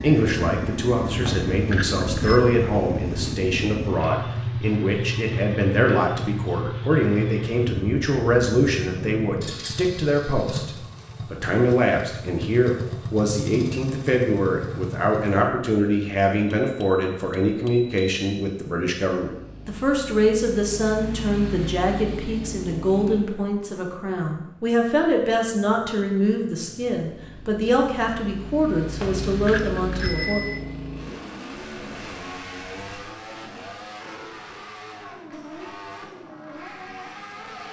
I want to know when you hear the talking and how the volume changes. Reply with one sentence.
You can hear the talking from 0.0 to 10.7 s, at a steady volume; and from 11.3 to 30.4 s, at a steady volume.